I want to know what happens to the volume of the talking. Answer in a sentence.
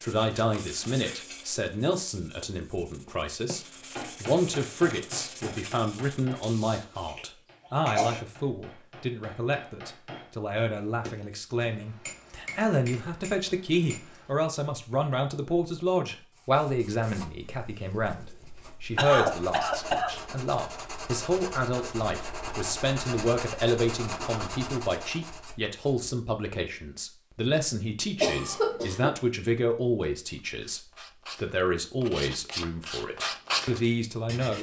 The loudness of the talking stays about the same.